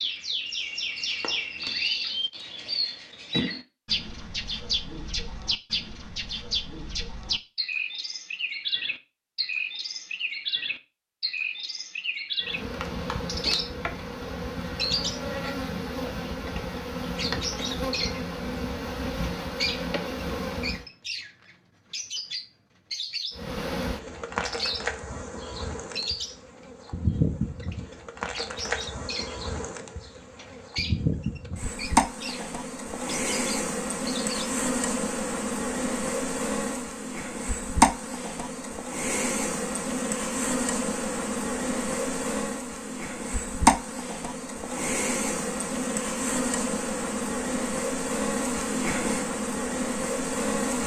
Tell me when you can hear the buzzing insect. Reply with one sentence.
The buzzing insect can be heard from 12.4 to 20.9 s and from 23.3 to 50.8 s.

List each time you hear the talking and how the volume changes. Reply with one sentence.
You can't hear the talking here.